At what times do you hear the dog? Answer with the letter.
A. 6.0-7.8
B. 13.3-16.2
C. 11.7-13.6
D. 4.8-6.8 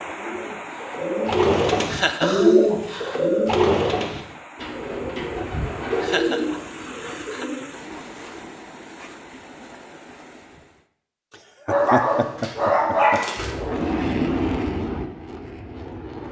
C.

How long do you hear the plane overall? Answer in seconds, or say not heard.
3 s.